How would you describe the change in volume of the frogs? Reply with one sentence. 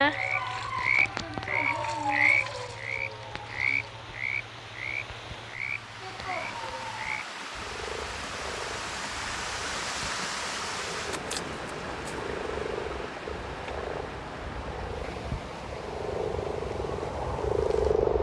The loudness of the frogs goes down, then up.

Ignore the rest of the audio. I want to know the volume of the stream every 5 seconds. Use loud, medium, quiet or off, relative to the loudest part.
medium, loud, loud, medium.